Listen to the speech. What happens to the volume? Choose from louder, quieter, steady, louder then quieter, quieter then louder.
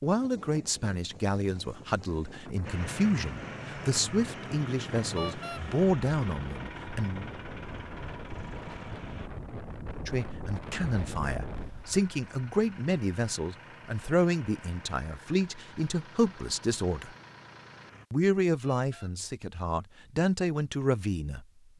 steady.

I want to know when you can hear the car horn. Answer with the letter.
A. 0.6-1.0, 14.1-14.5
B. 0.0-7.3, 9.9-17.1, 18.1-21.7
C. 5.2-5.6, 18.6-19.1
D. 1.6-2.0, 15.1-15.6
C.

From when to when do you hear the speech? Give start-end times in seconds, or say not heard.
0.0-7.3, 9.9-17.1, 18.1-21.7.